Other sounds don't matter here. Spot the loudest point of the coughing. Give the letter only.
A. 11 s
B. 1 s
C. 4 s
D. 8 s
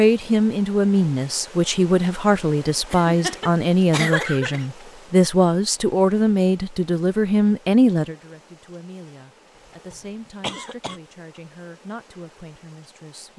C.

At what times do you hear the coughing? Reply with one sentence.
The coughing can be heard from 2.9 to 4.7 s and from 9.7 to 11.0 s.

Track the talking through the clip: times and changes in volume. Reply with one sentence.
You can hear the talking from 0.0 to 13.3 s, getting quieter.